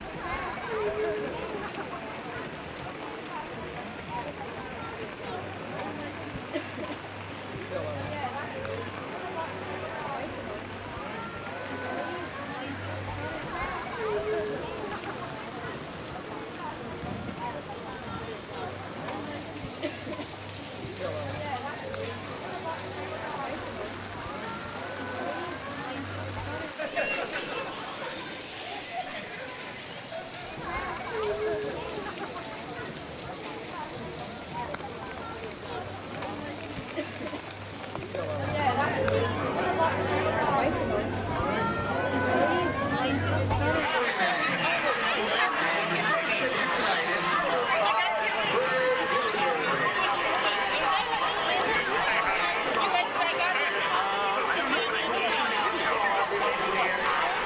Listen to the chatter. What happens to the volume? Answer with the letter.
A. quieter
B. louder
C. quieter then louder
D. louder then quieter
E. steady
B.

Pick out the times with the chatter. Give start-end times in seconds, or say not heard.
0.0-57.4.